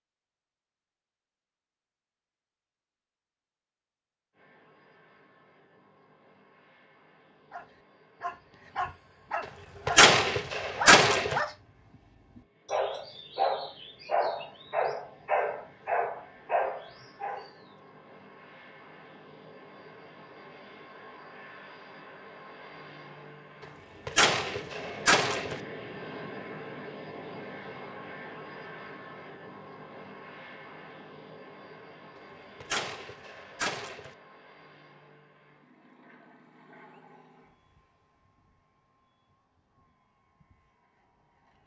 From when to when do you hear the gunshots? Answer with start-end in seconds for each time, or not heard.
9.8-11.4, 24.1-25.6, 32.6-34.1.